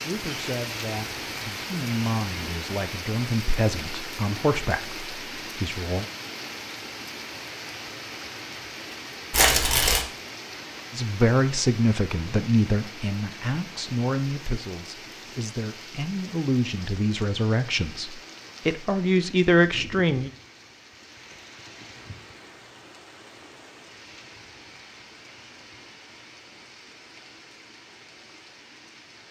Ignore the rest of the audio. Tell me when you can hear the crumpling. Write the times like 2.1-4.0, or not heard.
9.3-10.1.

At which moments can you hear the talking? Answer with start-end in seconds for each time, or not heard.
0.0-6.0, 10.9-20.3.